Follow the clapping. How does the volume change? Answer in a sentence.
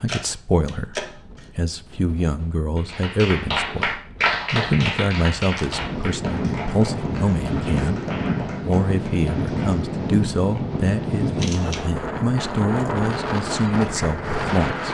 The volume of the clapping goes down.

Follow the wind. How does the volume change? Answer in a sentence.
The volume of the wind goes up.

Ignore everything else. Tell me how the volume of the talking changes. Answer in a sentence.
The volume of the talking stays about the same.